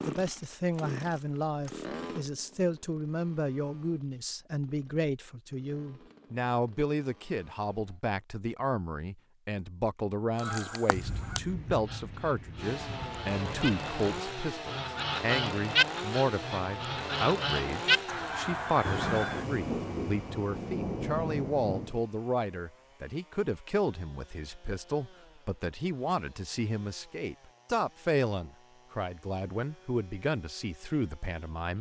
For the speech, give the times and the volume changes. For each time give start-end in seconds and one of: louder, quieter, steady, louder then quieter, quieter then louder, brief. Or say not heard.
0.0-31.7 steady.